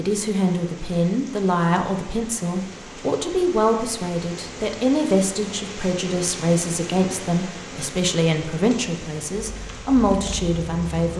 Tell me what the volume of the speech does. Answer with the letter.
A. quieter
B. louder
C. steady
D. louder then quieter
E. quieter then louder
C.